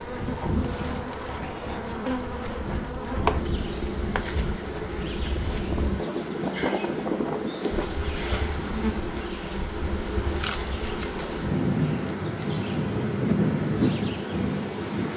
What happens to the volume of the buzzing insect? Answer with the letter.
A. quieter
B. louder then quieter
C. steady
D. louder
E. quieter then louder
C.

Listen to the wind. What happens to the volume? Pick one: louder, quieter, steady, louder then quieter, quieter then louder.
louder.